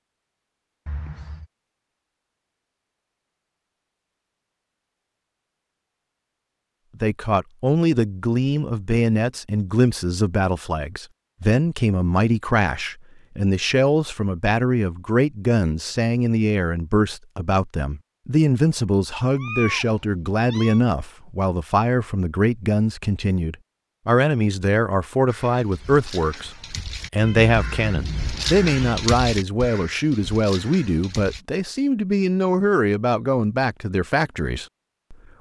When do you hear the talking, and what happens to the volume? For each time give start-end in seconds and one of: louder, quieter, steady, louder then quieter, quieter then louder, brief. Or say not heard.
7.0-35.1 steady.